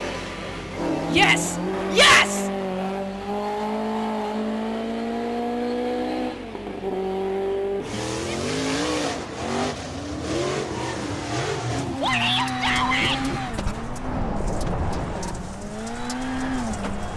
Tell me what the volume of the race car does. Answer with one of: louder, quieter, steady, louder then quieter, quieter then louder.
steady.